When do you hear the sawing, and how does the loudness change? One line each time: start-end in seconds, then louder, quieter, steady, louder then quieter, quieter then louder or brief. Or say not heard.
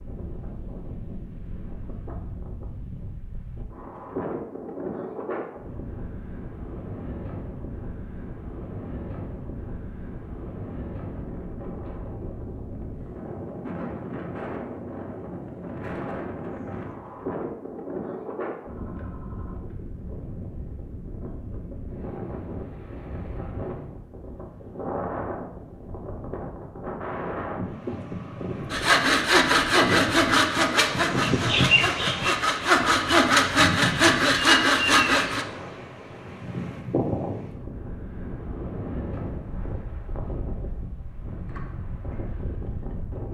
28.7-35.5 quieter then louder.